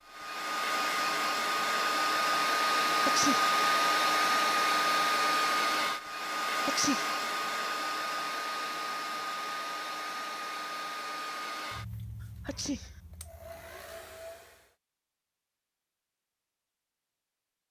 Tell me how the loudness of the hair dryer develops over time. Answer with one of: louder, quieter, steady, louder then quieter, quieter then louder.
quieter.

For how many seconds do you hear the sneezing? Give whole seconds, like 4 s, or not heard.
2 s.